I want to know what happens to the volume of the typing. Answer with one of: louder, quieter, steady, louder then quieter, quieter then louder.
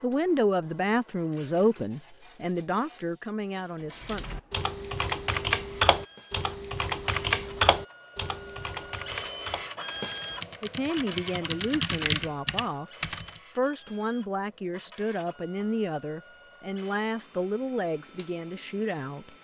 quieter then louder.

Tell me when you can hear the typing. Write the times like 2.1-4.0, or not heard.
4.0-13.4.